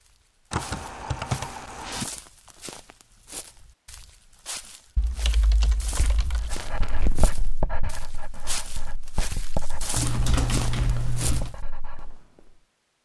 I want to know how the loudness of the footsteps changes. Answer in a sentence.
The loudness of the footsteps goes up.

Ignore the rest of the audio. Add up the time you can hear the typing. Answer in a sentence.
You can hear the typing for 5 seconds altogether.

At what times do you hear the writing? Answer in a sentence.
You can hear the writing from 6.4 to 12.2 s.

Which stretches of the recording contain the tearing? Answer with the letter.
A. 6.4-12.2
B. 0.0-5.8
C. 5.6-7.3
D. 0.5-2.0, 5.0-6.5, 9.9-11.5
C.